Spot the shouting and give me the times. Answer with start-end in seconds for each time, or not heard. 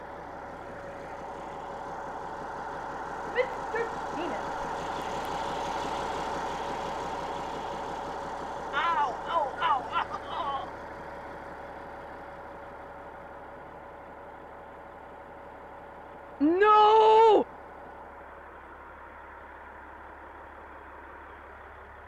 3.4-4.4, 8.7-10.7, 16.4-17.4.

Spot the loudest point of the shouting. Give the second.
17 s.